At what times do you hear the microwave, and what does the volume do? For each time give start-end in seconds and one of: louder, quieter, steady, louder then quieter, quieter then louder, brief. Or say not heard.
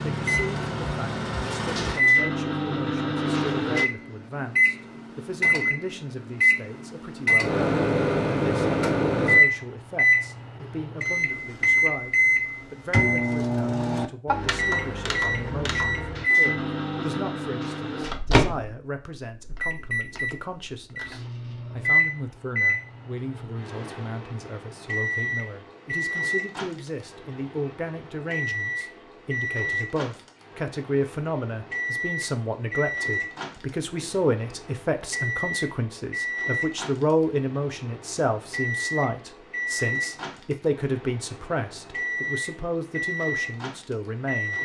0.0-44.5 quieter.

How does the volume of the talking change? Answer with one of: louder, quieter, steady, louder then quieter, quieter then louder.
louder.